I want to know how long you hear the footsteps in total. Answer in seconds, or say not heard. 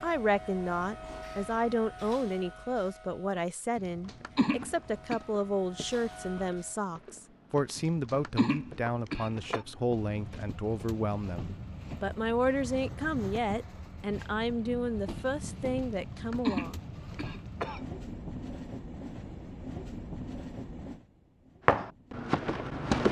8 s.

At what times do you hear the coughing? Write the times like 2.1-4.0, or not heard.
3.8-5.2, 7.8-9.7, 15.8-17.9.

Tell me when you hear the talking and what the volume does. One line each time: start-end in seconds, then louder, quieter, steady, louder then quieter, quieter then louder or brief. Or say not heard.
0.0-16.8 steady.